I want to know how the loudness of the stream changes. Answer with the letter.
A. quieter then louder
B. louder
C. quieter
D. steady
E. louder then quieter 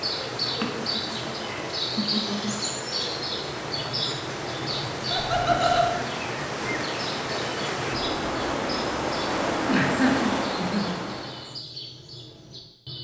B.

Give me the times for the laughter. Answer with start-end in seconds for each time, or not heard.
0.6-2.5, 5.1-5.9, 9.7-10.9.